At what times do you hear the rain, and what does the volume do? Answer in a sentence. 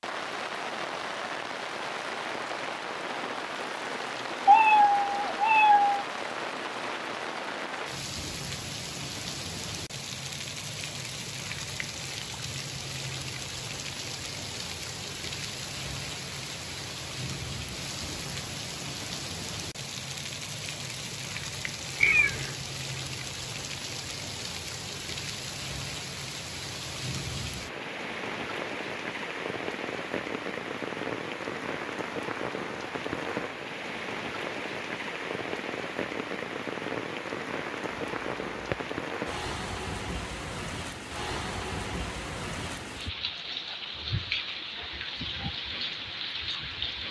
You can hear the rain from 0.0 to 47.0 s, at a steady volume.